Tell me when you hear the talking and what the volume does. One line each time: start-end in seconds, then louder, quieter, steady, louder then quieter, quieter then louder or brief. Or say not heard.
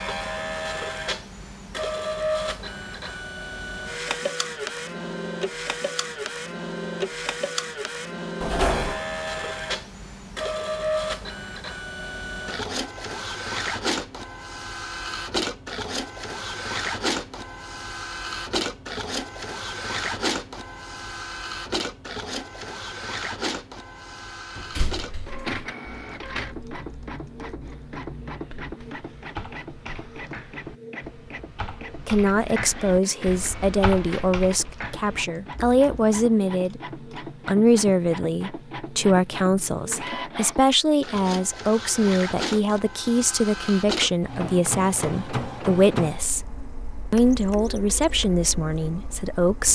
32.0-49.7 steady.